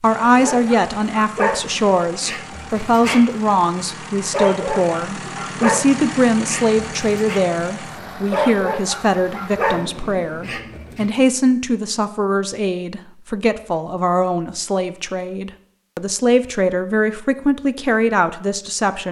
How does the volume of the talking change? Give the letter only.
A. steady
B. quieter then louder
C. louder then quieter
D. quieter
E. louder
A.